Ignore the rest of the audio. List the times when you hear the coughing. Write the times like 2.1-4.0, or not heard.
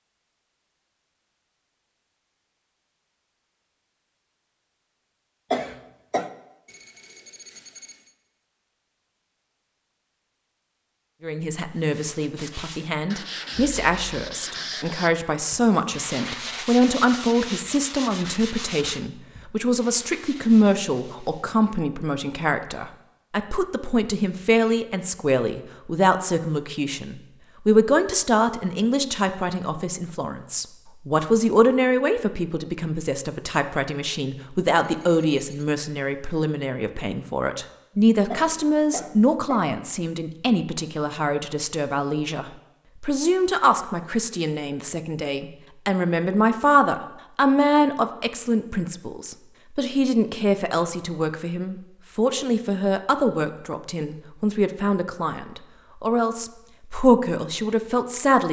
5.5-6.3, 38.3-39.7.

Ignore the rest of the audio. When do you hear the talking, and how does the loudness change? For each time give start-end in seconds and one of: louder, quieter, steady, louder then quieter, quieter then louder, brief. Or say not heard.
11.2-58.4 steady.